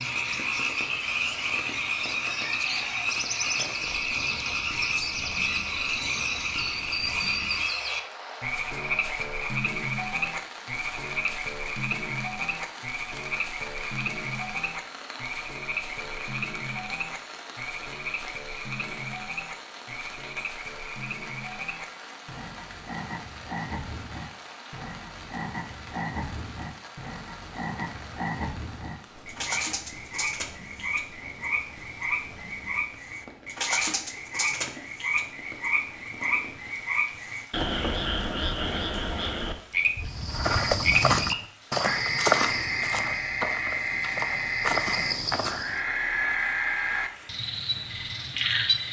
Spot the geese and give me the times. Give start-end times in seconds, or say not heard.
not heard.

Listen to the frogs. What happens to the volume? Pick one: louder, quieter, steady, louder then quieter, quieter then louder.
quieter then louder.